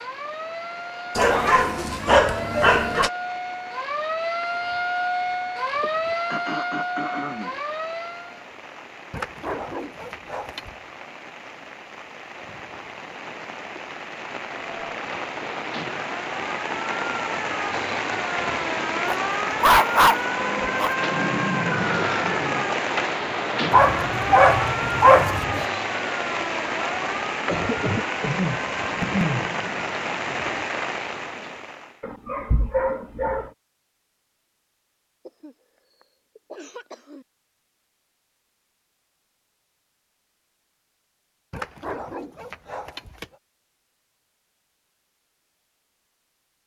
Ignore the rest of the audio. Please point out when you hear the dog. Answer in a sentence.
The dog can be heard from 1.1 to 3.1 s, from 9.1 to 10.7 s, from 19.1 to 20.9 s, from 23.7 to 25.6 s, from 32.0 to 33.5 s and from 41.5 to 43.2 s.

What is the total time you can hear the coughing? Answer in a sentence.
You can hear the coughing for 6 seconds altogether.